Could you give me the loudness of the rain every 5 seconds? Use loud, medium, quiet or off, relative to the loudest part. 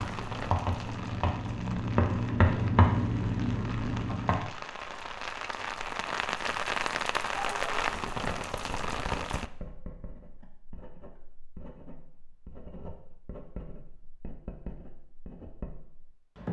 medium, loud, off, off.